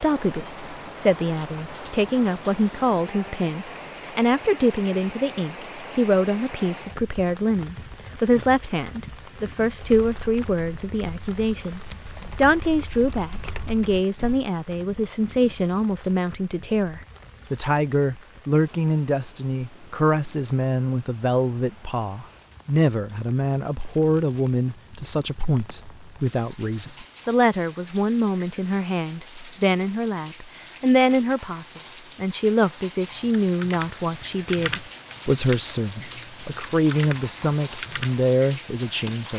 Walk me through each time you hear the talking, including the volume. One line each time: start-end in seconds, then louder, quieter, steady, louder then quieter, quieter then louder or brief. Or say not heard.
0.0-39.3 steady.